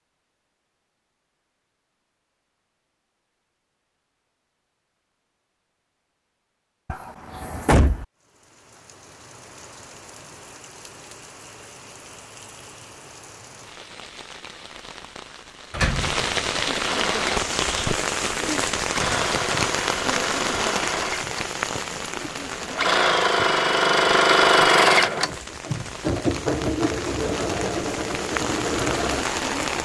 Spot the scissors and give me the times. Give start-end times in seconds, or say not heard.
not heard.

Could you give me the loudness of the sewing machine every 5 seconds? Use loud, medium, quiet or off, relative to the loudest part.
off, off, off, medium, loud, medium.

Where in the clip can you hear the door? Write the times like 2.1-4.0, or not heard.
6.8-8.1, 15.7-16.2.